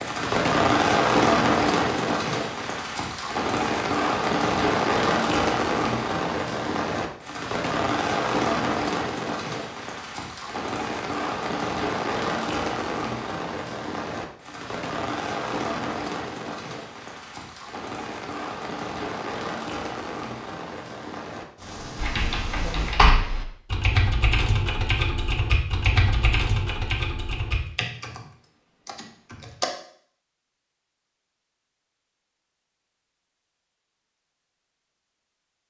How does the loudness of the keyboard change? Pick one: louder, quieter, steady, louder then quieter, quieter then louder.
quieter.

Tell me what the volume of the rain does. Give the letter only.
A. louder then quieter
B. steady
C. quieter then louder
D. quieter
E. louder
D.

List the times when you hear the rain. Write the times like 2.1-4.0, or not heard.
0.0-22.9.